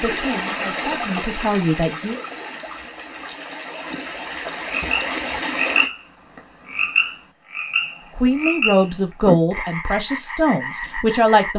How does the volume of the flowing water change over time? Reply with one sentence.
The volume of the flowing water goes down, then up.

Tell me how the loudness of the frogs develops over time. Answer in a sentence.
The loudness of the frogs goes down.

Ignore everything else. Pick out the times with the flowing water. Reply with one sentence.
The flowing water can be heard from 0.0 to 5.9 s.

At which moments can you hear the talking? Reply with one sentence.
You can hear the talking from 0.0 to 2.1 s and from 8.2 to 11.5 s.